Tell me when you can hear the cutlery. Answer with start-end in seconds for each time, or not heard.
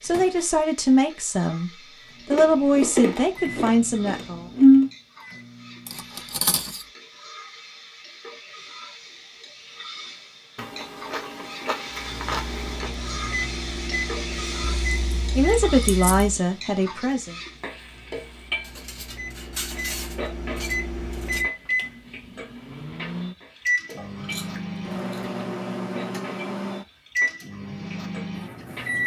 5.8-6.8, 18.6-21.4.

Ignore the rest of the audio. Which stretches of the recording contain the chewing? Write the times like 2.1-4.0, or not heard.
2.2-4.9, 10.6-12.9, 14.8-16.4, 23.9-25.4.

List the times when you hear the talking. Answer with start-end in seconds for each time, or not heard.
0.0-4.5, 15.3-17.4.